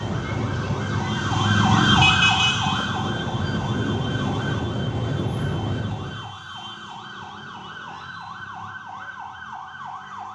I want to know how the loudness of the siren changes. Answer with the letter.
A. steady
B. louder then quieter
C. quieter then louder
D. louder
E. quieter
E.